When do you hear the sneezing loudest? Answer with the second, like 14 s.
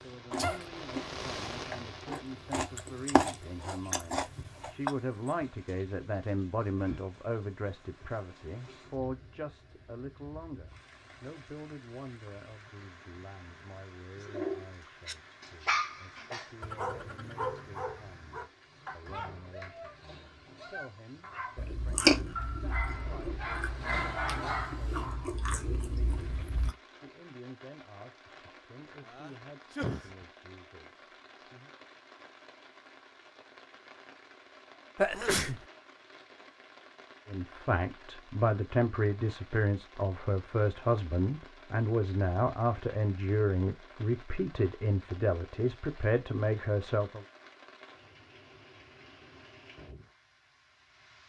35 s.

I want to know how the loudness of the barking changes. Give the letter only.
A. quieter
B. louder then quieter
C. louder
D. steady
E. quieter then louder
E.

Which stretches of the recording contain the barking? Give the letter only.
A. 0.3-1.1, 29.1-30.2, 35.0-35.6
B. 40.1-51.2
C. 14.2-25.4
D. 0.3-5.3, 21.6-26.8
C.